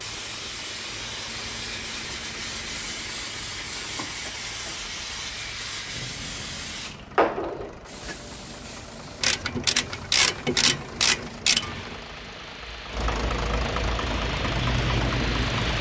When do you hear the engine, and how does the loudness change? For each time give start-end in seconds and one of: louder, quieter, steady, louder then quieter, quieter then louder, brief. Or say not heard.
0.0-15.7 louder.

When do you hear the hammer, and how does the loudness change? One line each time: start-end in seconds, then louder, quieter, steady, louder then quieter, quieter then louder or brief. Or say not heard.
not heard.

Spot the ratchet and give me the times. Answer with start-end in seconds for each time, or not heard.
9.2-11.9.